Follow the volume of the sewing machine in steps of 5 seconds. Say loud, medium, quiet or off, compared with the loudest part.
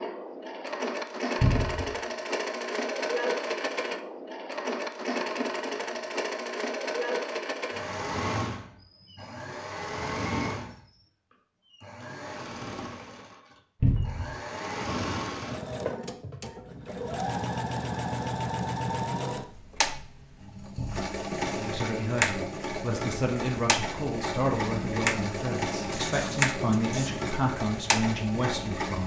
loud, loud, medium, loud, loud, loud.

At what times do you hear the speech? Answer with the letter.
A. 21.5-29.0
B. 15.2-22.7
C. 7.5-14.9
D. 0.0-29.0
A.